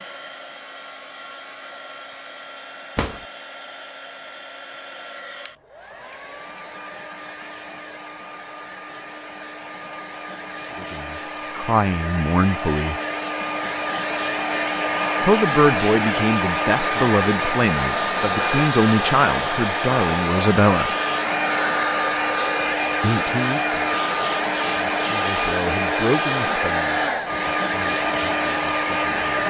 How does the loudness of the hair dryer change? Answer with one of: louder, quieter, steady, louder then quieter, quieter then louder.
louder.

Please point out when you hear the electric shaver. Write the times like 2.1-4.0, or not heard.
not heard.